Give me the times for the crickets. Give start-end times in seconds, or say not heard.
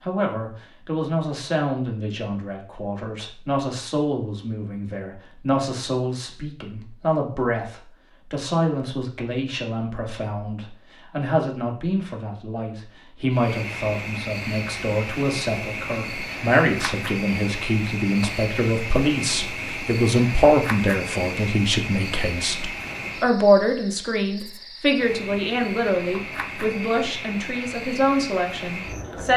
13.3-29.3.